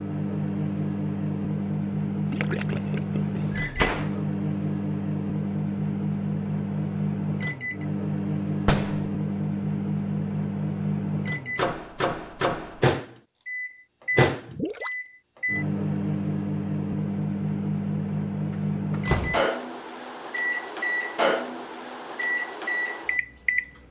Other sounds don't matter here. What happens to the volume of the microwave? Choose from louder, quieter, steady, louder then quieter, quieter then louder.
steady.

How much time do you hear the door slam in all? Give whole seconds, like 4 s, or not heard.
2 s.